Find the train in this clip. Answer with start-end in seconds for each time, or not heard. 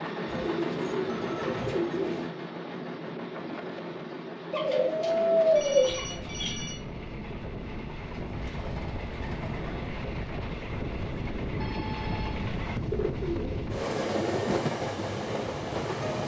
0.0-16.2.